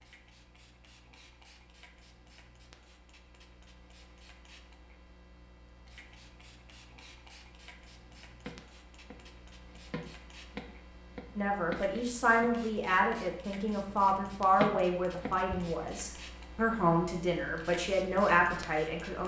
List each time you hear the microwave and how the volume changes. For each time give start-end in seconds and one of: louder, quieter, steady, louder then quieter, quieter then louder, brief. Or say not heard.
not heard.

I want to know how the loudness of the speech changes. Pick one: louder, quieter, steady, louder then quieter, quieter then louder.
steady.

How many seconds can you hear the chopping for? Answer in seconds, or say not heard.
5 s.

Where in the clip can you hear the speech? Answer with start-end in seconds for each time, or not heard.
11.3-19.2.